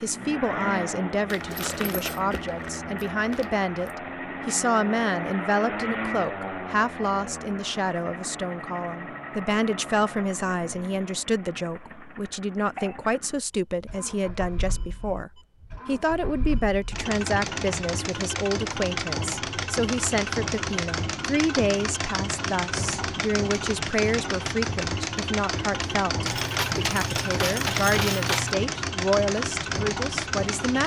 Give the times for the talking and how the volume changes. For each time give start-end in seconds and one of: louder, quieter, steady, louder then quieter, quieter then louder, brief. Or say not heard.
0.0-30.8 steady.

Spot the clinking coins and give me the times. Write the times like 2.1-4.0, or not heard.
1.3-4.0, 26.2-28.6.